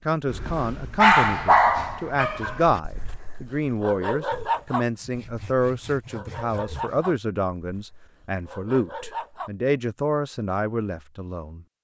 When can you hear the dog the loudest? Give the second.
1 s.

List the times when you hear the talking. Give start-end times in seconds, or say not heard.
0.1-11.7.